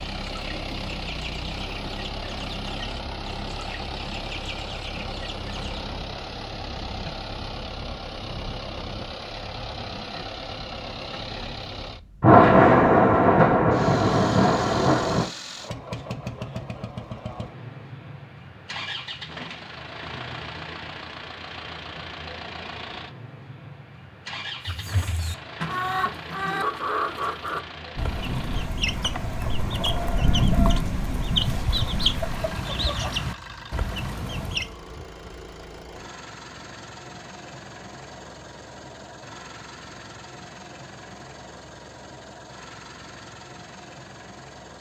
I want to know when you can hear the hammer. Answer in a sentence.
The hammer can't be heard in this clip.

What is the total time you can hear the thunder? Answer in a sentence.
You can hear the thunder for 8 seconds altogether.